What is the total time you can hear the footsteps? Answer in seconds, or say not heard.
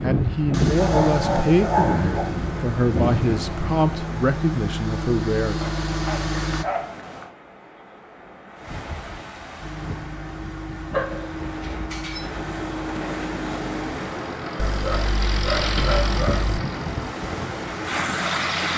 not heard.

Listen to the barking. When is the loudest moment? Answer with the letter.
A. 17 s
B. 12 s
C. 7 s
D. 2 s
D.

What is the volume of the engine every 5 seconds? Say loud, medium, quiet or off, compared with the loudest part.
loud, loud, medium, loud.